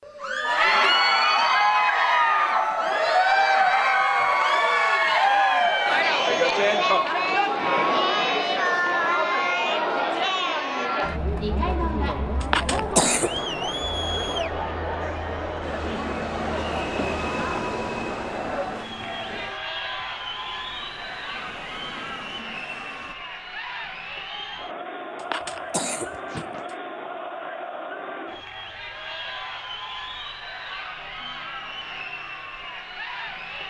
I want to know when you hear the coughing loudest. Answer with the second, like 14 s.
13 s.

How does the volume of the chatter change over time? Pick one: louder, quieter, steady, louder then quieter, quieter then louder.
quieter.